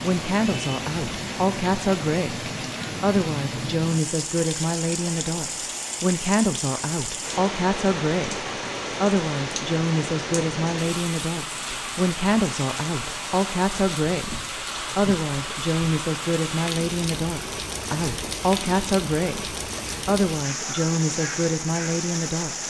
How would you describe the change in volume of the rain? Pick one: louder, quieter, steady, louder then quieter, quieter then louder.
steady.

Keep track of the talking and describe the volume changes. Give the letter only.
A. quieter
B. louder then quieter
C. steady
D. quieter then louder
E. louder
C.